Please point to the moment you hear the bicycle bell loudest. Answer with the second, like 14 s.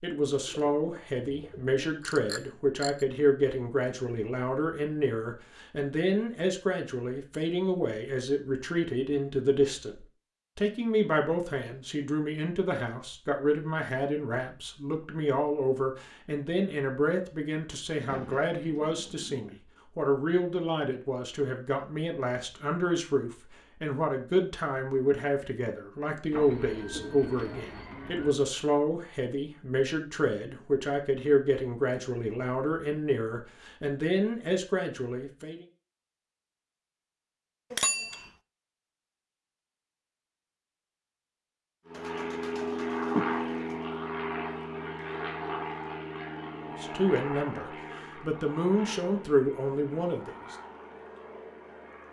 38 s.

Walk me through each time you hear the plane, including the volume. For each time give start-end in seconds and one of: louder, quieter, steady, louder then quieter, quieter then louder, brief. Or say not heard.
41.9-52.0 quieter.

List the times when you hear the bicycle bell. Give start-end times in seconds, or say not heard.
2.0-3.0, 37.7-38.3.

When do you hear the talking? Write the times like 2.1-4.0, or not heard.
0.0-35.6, 46.8-50.5.